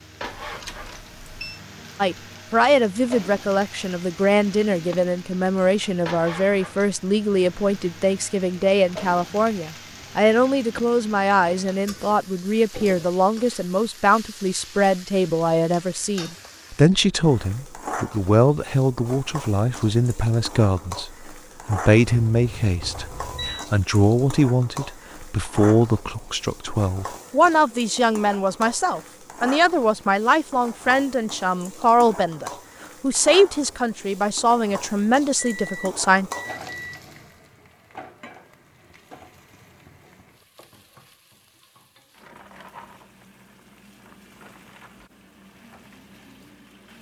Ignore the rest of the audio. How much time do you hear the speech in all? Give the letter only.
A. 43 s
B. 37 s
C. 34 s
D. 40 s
C.